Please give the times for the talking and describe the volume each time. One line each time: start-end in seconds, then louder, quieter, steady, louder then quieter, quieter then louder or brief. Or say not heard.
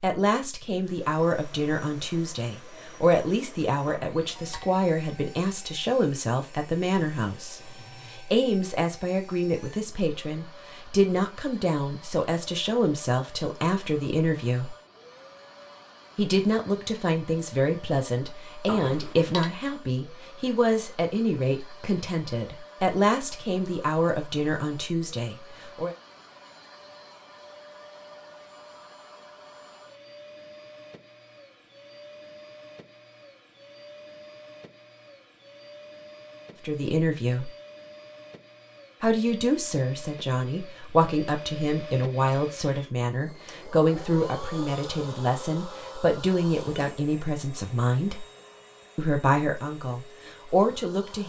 0.0-14.8 steady
16.1-25.9 steady
36.6-37.5 brief
39.0-48.2 steady
49.0-51.2 brief.